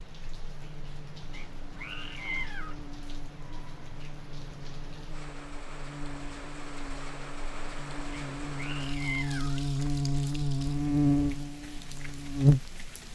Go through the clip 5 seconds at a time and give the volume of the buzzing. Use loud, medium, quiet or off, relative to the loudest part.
quiet, medium, loud.